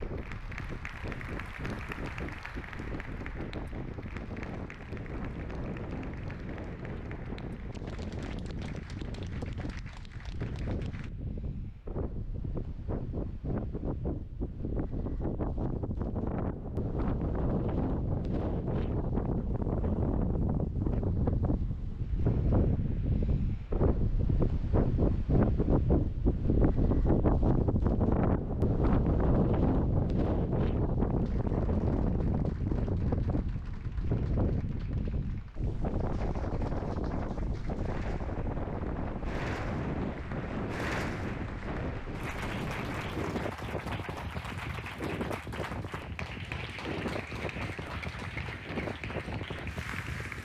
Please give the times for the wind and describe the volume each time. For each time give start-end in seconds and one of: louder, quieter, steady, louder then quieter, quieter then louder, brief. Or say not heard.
0.0-50.4 louder then quieter.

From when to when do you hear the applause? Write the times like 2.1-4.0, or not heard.
0.0-11.1, 31.1-50.4.